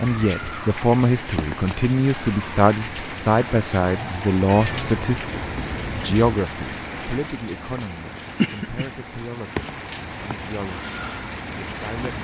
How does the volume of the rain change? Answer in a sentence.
The volume of the rain stays about the same.